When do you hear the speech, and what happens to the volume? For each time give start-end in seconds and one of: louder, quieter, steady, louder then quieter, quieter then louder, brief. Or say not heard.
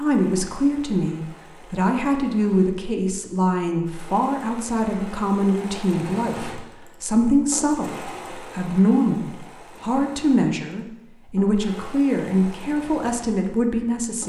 0.0-14.2 steady.